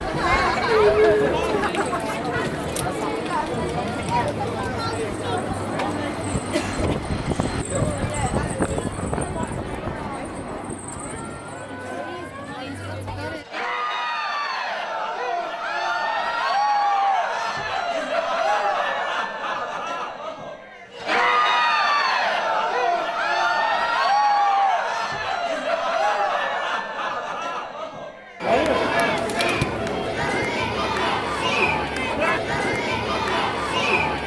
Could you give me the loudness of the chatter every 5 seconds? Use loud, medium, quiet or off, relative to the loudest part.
loud, medium, medium, loud, loud, loud, loud.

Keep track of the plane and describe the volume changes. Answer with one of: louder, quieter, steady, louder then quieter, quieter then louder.
louder then quieter.